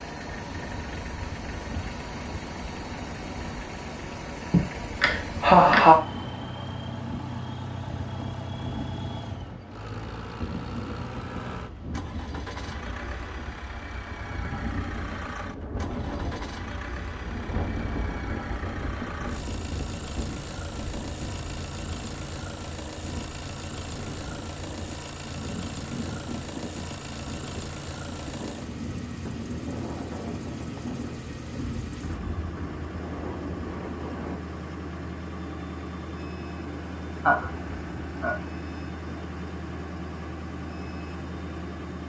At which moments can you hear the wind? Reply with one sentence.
The wind can be heard from 0.1 to 34.4 s.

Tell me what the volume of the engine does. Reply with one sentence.
The loudness of the engine stays about the same.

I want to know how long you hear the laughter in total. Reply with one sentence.
The laughter can be heard for 3 seconds in total.